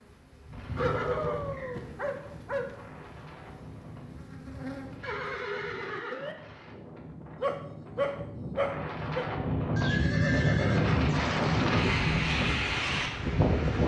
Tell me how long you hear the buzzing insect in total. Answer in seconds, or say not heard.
5 s.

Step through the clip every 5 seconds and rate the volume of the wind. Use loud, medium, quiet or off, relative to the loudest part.
quiet, medium, loud.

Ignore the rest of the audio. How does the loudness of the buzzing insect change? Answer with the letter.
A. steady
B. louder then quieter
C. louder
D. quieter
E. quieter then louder
E.